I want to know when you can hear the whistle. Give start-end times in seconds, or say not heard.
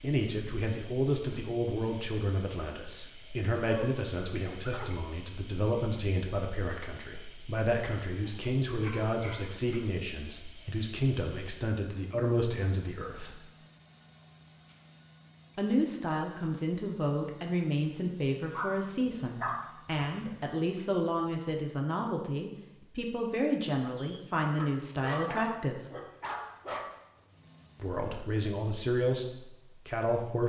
not heard.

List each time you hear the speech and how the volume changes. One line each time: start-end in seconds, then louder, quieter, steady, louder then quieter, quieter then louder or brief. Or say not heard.
0.0-13.4 steady
15.6-25.8 steady
27.8-30.4 brief.